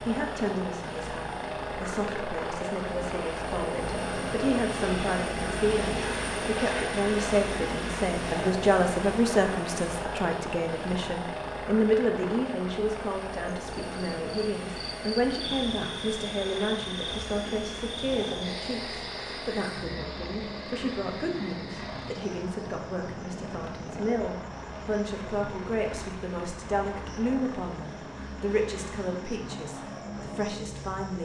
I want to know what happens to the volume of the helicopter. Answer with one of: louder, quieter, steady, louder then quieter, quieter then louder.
quieter.